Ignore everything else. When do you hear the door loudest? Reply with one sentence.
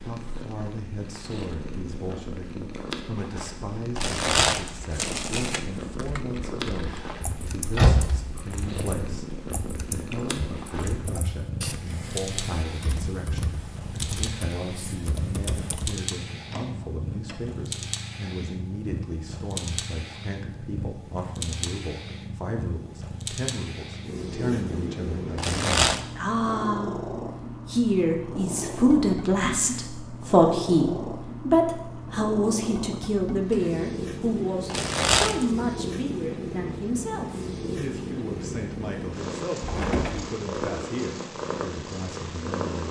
The volume of the door peaks at 8 seconds.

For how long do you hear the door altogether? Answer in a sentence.
The door can be heard for 2 seconds in total.